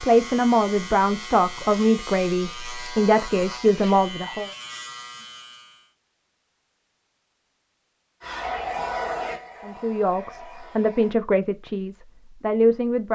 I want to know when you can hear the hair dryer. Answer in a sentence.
You can hear the hair dryer from 8.2 to 11.2 s.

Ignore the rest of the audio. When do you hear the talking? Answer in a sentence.
The talking can be heard from 0.0 to 4.5 s and from 9.7 to 13.1 s.